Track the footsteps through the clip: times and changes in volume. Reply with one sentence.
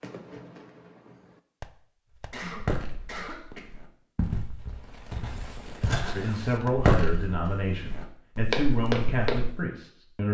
You can hear the footsteps from 2.5 to 9.7 s, getting louder.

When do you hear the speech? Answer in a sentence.
The speech can be heard from 6.1 to 10.2 s.